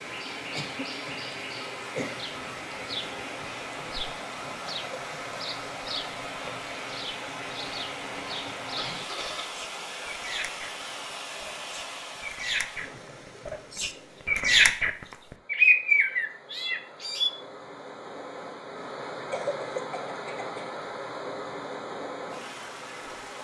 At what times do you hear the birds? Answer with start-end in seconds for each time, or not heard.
0.0-14.9, 15.5-17.3.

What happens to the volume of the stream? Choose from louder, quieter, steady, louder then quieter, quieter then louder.
quieter then louder.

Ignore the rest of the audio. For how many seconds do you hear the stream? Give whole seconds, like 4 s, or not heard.
23 s.